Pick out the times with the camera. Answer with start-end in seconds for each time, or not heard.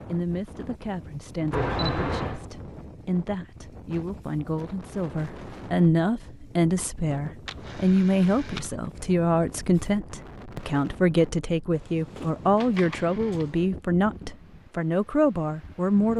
1.5-2.4, 7.5-8.7, 12.6-13.4.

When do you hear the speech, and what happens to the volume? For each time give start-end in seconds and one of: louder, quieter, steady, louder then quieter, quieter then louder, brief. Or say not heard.
0.1-16.1 louder.